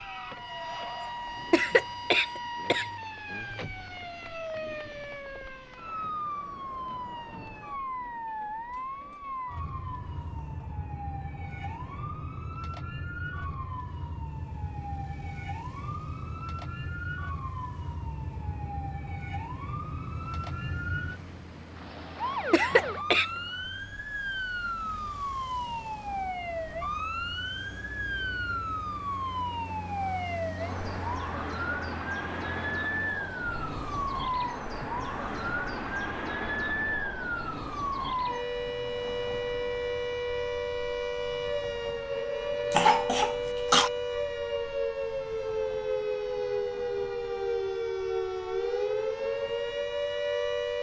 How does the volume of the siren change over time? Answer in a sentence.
The loudness of the siren goes up.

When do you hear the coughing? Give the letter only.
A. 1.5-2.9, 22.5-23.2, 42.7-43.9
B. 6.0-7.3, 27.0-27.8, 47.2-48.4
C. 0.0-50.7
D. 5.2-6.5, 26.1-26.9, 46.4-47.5
A.